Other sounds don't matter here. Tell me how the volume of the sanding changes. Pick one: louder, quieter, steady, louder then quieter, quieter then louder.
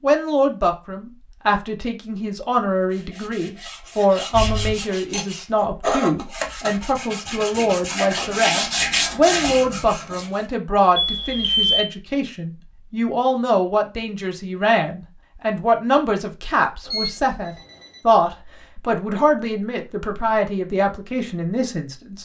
louder.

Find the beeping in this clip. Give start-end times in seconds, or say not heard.
4.3-5.2, 10.9-11.8, 16.9-18.0.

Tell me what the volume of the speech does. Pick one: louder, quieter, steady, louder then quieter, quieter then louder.
steady.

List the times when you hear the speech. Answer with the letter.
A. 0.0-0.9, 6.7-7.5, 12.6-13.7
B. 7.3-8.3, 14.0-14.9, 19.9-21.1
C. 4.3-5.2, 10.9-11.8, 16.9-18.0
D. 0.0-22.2
D.